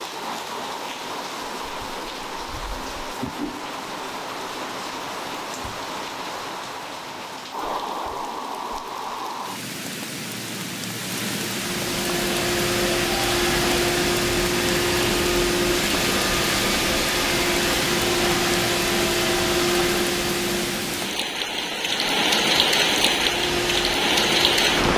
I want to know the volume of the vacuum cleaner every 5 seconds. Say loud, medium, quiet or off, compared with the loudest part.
off, off, loud, loud, medium.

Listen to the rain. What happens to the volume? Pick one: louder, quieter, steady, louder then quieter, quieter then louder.
louder.